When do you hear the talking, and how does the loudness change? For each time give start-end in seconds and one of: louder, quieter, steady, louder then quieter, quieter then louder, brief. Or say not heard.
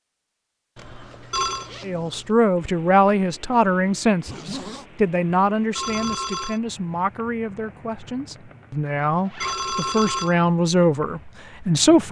1.9-12.0 quieter then louder.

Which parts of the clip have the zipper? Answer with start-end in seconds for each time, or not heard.
0.8-2.4, 4.2-4.8, 9.2-9.7.